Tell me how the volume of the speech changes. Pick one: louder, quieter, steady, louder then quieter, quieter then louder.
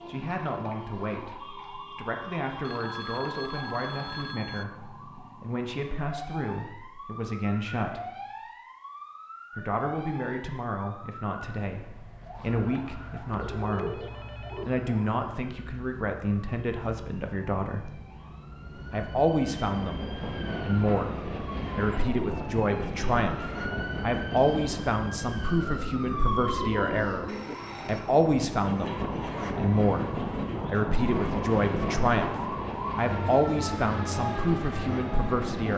louder.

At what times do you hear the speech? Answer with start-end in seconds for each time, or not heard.
0.1-8.1, 9.6-17.9, 18.9-35.7.